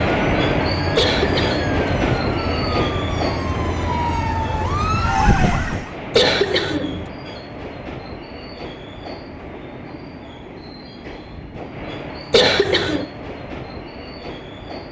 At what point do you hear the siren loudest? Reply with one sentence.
The volume of the siren peaks at 5 seconds.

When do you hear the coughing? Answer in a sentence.
You can hear the coughing from 0.9 to 2.1 s, from 6.1 to 7.0 s and from 12.3 to 13.1 s.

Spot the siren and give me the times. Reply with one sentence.
You can hear the siren from 0.0 to 6.0 s.